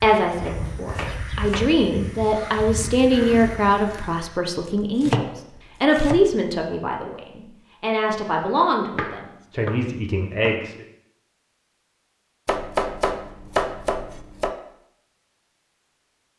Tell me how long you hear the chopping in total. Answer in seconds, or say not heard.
7 s.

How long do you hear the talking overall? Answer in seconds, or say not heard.
11 s.